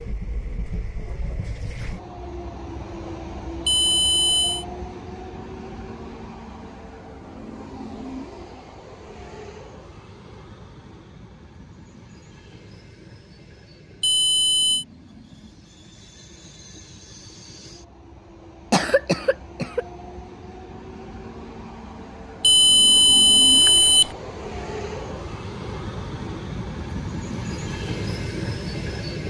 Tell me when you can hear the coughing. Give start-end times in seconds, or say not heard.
18.7-19.9.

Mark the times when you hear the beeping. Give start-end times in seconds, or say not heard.
3.6-4.7, 14.0-14.8, 22.4-24.1.